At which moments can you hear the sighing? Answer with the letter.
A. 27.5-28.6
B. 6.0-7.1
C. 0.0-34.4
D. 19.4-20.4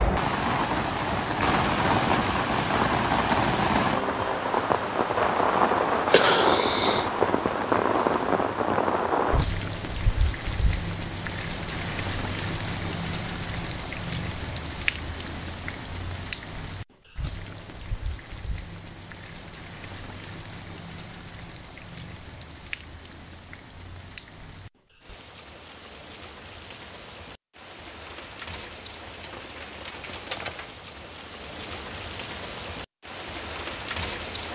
B.